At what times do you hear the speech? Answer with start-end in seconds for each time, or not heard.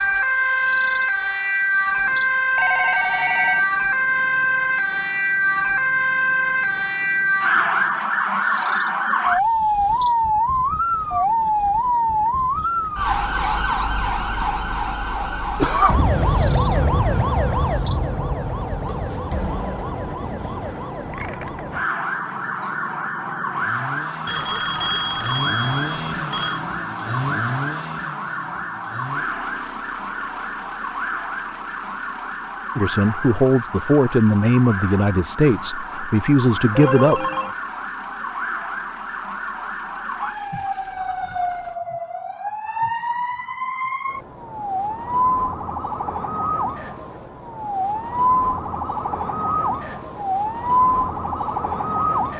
32.8-37.2.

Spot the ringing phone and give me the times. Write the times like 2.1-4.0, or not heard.
2.5-3.7, 24.2-26.6, 36.8-37.5.